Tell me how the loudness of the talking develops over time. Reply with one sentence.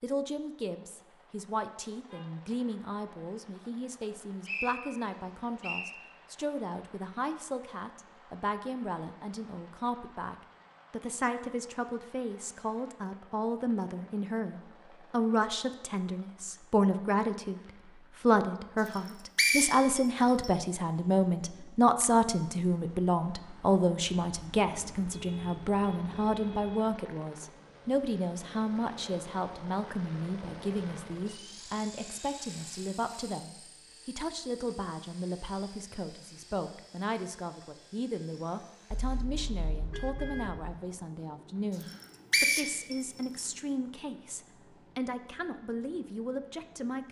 The loudness of the talking goes up, then down.